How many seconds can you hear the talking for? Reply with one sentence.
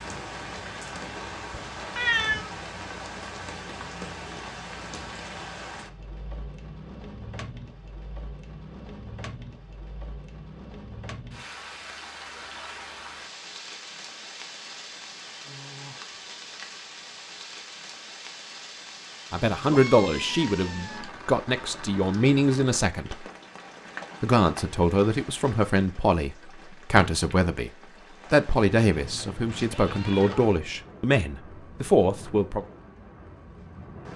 You can hear the talking for 12 seconds altogether.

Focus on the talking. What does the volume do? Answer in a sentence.
The volume of the talking stays about the same.